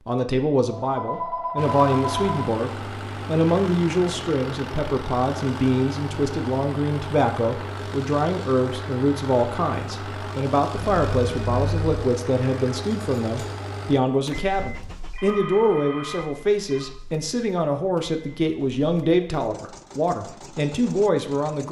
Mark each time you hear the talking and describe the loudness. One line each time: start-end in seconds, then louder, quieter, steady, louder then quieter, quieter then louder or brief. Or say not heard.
0.1-21.6 steady.